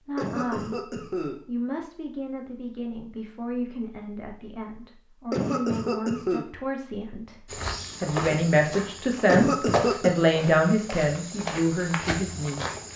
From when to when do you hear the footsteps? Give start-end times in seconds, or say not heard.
7.5-12.9.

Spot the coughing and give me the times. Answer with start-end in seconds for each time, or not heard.
0.1-1.4, 5.3-6.5, 9.2-10.2.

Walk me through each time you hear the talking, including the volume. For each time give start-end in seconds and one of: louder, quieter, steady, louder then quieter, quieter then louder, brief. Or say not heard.
0.1-12.7 louder.